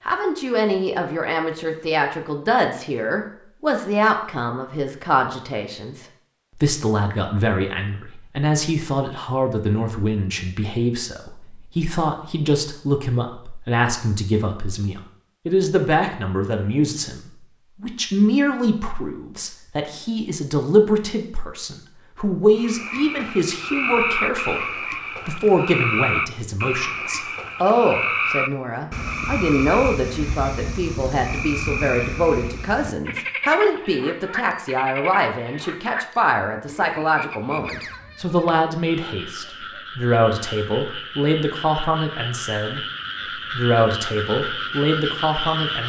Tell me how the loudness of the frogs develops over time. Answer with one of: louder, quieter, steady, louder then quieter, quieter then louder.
quieter then louder.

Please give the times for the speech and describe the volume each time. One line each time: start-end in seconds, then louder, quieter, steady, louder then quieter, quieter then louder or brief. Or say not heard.
0.1-45.8 steady.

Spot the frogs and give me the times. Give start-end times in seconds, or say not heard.
22.6-45.8.